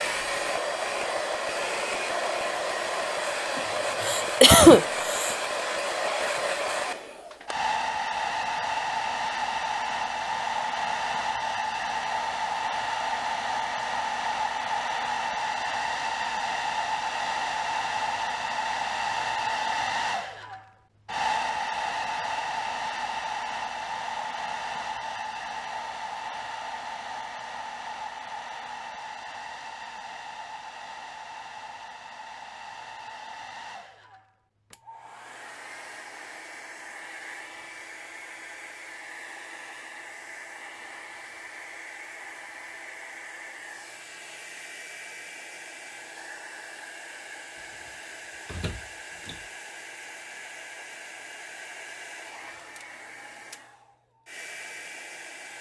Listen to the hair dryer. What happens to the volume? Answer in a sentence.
The loudness of the hair dryer goes down.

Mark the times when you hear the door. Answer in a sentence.
The door can be heard from 47.9 to 49.5 s.